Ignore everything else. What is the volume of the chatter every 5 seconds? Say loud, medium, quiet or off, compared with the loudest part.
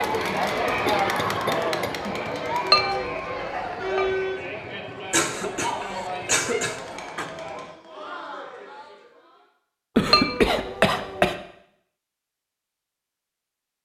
loud, medium, off.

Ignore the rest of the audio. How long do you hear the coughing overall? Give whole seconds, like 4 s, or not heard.
5 s.